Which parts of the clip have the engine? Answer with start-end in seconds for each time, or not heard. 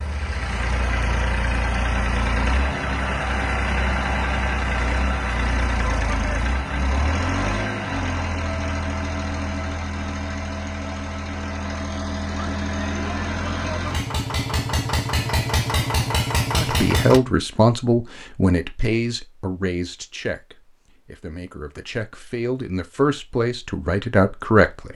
0.0-17.2.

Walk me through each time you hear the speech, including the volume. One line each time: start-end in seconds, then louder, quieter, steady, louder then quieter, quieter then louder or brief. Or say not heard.
16.5-24.9 quieter then louder.